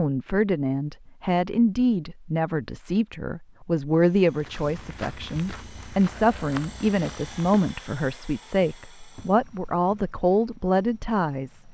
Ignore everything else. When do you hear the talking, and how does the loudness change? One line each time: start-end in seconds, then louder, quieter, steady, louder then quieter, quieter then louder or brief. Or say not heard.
0.0-11.6 steady.